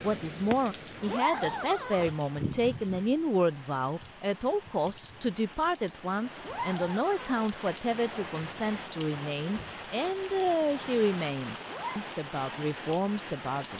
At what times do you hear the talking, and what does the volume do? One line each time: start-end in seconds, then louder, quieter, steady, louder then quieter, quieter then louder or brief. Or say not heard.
0.0-13.7 steady.